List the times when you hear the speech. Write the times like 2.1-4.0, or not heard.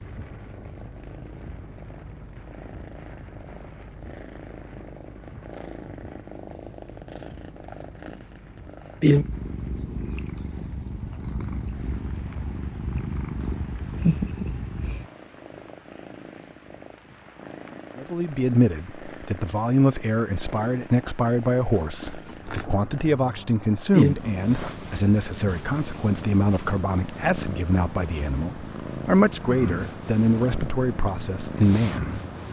17.9-32.2.